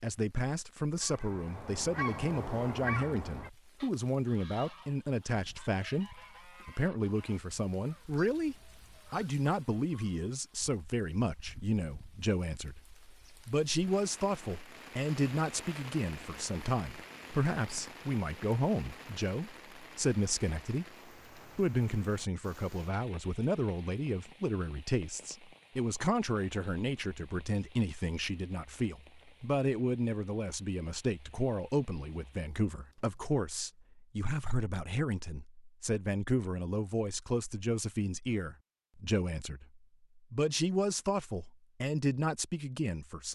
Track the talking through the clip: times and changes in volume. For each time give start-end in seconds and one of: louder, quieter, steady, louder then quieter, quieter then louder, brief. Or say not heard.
0.0-43.3 steady.